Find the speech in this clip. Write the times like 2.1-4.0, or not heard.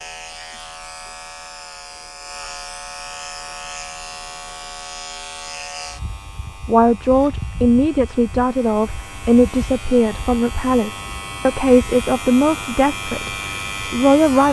6.7-14.4.